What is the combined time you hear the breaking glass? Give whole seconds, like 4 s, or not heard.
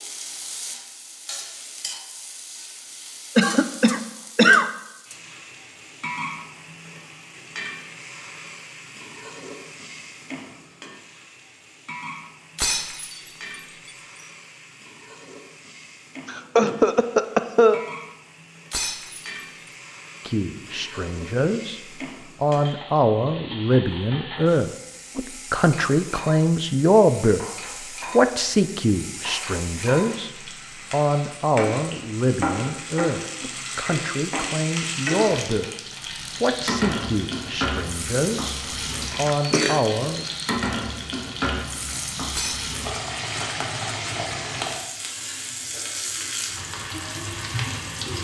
3 s.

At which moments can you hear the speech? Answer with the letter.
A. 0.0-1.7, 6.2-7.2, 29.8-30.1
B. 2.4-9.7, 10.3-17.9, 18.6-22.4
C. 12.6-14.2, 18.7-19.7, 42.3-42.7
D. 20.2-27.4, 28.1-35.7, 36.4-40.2
D.